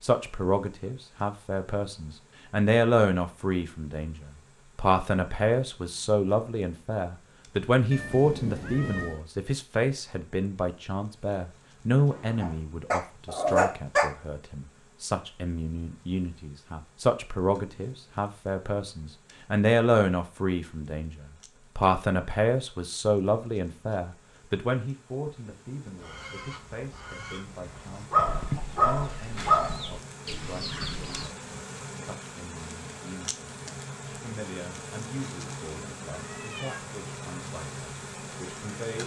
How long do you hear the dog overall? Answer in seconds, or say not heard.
4 s.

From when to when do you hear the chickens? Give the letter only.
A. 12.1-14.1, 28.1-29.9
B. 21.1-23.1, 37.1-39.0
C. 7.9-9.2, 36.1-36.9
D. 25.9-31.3
D.